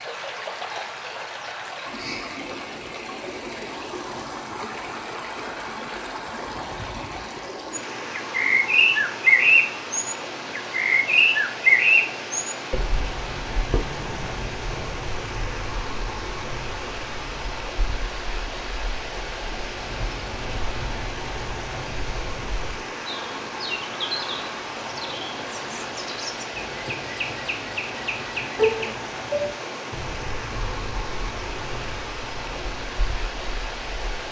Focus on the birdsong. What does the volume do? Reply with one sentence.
The volume of the birdsong goes down, then up.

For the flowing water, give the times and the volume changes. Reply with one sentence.
The flowing water can be heard from 0.0 to 34.2 s, at a steady volume.